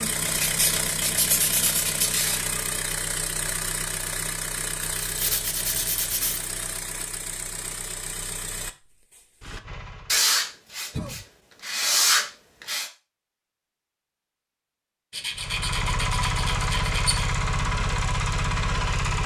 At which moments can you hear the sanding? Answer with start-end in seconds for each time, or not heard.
0.2-2.5, 5.0-6.5, 10.1-12.9, 15.1-17.3.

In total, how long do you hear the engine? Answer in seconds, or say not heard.
14 s.